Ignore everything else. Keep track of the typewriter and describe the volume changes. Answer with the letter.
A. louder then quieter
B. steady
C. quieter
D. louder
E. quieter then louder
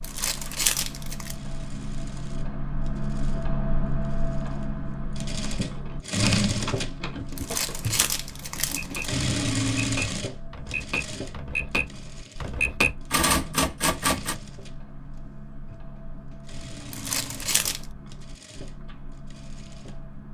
D.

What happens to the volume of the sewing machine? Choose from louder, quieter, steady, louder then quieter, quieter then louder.
louder then quieter.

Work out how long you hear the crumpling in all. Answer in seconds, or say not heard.
4 s.